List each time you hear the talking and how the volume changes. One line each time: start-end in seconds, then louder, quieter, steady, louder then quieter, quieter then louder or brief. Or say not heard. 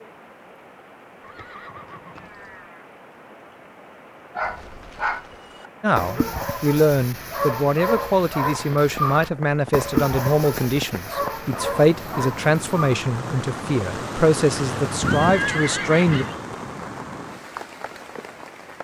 5.8-16.2 steady.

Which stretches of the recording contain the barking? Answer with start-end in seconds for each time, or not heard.
4.3-13.0.